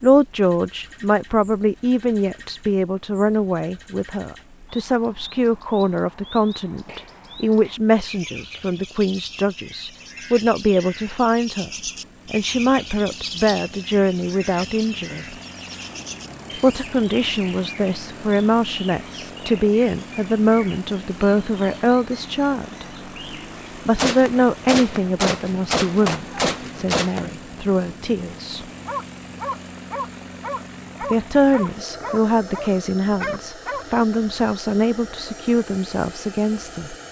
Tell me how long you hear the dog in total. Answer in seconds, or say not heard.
5 s.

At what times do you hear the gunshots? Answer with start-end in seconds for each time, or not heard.
23.9-27.4.